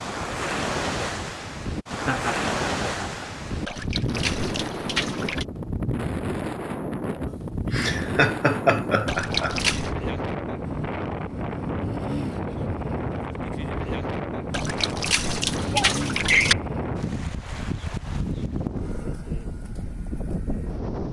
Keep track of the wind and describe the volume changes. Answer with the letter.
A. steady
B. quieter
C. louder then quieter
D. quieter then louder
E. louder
A.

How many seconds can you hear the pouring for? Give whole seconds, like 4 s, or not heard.
5 s.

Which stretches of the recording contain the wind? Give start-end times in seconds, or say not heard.
0.0-21.0.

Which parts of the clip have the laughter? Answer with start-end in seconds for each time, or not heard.
2.0-3.3, 7.7-9.7, 15.7-16.6.